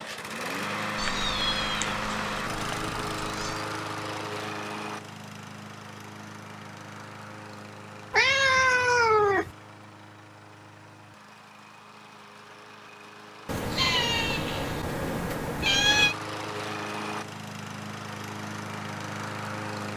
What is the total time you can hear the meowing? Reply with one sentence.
The meowing can be heard for 7 seconds in total.